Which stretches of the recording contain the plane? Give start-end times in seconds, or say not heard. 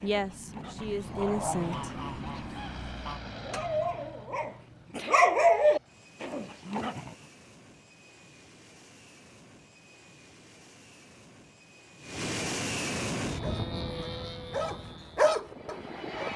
0.0-16.3.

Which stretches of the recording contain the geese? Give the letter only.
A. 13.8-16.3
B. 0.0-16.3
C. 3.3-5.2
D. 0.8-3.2
D.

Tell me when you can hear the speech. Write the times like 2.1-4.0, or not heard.
0.0-1.9.